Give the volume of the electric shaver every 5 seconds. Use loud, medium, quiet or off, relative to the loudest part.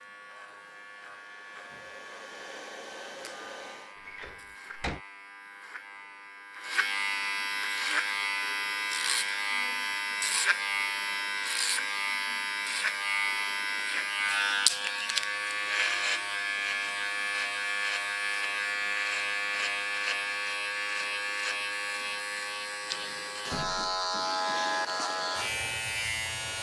quiet, loud, loud, loud, loud, loud.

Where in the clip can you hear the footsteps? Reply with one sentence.
You can't hear the footsteps here.